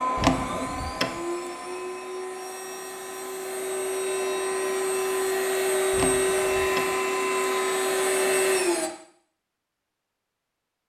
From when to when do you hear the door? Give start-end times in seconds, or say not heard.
0.1-1.2, 5.9-7.0.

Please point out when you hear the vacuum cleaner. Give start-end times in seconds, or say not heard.
0.0-8.9.